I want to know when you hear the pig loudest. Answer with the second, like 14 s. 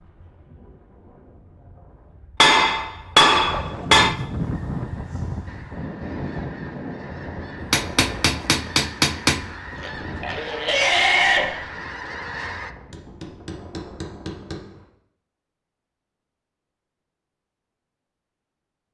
11 s.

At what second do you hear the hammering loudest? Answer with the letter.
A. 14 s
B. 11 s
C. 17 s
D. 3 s
D.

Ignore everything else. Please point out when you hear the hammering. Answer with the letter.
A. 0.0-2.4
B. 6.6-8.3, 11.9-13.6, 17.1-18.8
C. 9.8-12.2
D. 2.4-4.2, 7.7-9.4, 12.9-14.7
D.